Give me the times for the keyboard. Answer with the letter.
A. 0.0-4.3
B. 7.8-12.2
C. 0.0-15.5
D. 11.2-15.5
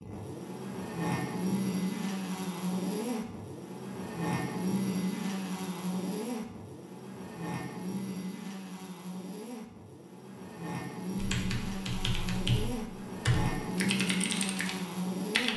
D.